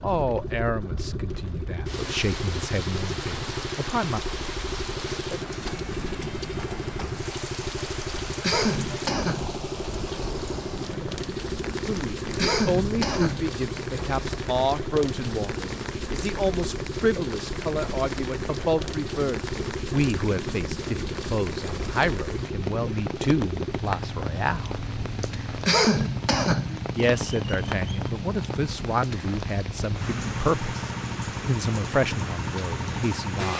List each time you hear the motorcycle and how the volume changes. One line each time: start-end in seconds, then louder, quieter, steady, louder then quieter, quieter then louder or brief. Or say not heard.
0.0-33.5 steady.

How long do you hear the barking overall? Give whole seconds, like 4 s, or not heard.
not heard.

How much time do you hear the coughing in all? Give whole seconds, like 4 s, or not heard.
5 s.